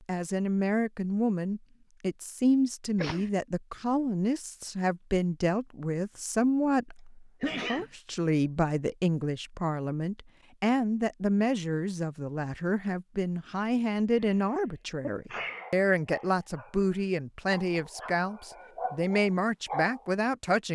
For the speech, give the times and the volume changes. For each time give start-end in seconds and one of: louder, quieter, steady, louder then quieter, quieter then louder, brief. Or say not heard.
0.1-20.7 steady.